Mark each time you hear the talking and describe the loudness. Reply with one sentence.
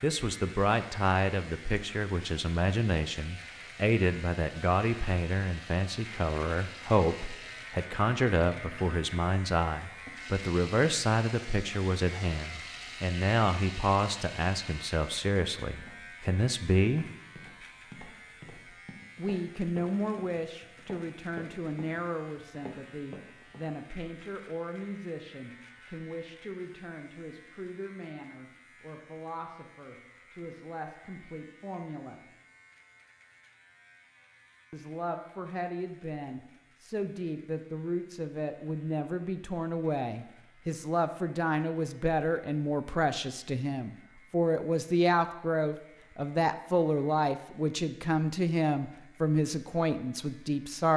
The talking can be heard from 0.0 to 17.1 s, at a steady volume; from 19.1 to 32.2 s, getting quieter; and from 34.7 to 50.9 s, getting louder.